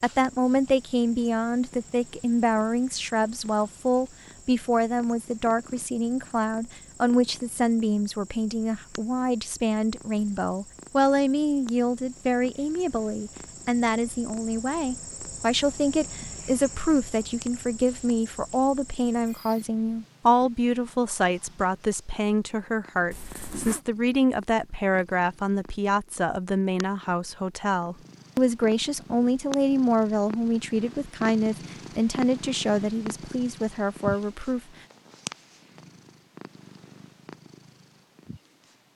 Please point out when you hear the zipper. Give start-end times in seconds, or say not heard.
23.1-23.9.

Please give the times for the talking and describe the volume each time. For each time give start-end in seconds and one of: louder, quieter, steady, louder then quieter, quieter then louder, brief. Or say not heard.
0.0-34.6 steady.